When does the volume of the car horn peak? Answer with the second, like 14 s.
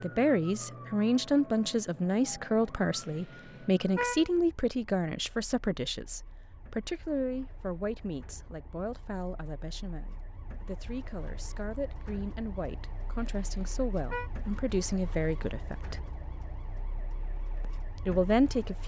4 s.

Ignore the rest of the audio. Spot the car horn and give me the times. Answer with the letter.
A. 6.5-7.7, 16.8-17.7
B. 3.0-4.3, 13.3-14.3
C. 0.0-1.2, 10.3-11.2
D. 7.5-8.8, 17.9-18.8
B.